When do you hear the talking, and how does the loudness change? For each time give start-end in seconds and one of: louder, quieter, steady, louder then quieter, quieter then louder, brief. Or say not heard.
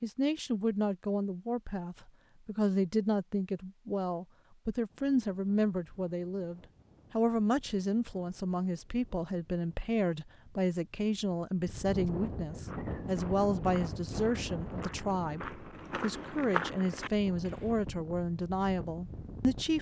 0.0-19.7 steady.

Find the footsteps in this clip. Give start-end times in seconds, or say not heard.
12.6-17.9.